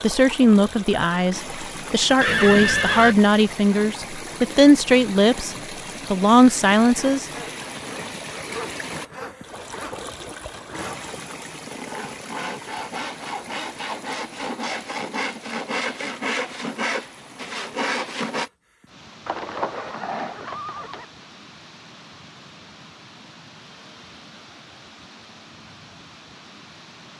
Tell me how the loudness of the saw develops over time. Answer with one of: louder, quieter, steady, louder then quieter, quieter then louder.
louder.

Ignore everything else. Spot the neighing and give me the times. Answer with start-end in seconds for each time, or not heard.
2.2-3.1, 19.2-21.1.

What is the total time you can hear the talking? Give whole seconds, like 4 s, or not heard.
7 s.